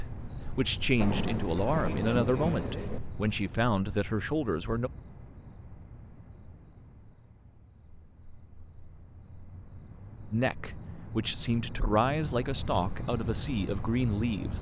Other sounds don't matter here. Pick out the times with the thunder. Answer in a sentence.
You can hear the thunder from 0.9 to 3.0 s.